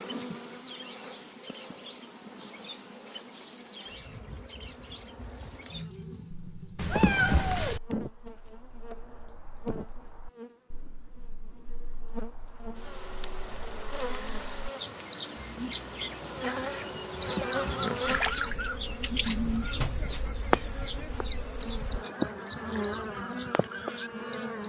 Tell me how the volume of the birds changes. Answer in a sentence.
The loudness of the birds goes down, then up.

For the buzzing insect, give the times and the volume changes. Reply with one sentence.
You can hear the buzzing insect from 0.0 to 24.6 s, getting louder.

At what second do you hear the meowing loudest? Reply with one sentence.
The volume of the meowing peaks at 7 seconds.